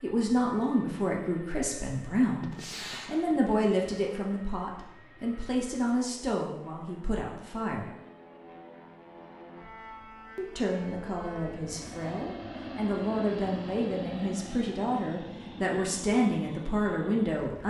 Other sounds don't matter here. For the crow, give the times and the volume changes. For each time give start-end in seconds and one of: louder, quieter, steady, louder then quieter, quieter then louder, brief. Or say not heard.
not heard.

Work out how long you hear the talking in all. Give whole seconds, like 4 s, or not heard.
15 s.